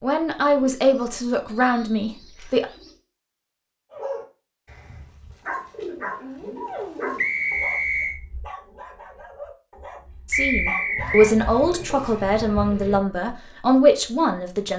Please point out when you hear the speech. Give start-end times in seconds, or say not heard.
0.0-2.6, 10.2-14.7.